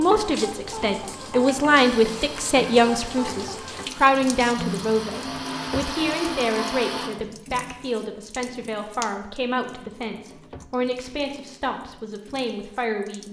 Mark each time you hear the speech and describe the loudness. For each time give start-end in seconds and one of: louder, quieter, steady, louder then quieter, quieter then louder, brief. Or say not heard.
0.0-13.2 quieter.